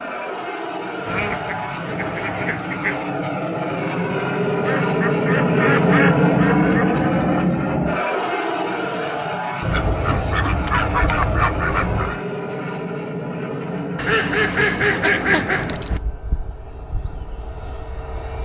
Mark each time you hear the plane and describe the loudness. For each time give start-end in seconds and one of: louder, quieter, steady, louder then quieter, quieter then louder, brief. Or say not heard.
0.0-18.4 louder then quieter.